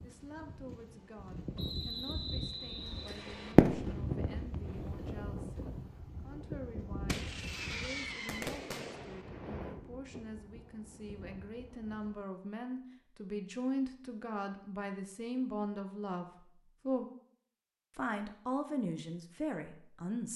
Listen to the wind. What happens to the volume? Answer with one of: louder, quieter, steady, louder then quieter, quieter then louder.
quieter.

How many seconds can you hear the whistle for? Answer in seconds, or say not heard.
2 s.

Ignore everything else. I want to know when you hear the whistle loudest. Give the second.
2 s.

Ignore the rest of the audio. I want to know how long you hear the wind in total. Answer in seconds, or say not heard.
12 s.